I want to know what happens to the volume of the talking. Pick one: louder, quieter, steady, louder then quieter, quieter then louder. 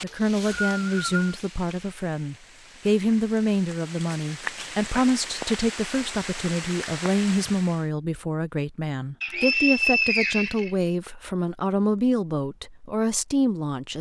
steady.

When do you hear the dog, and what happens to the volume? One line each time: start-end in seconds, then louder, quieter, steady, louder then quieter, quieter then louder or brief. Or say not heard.
not heard.